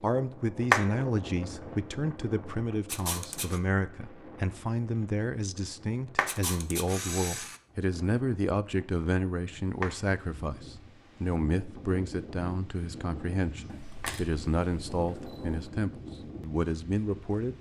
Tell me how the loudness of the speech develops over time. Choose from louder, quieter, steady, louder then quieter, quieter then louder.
steady.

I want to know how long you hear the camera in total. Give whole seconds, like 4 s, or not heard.
4 s.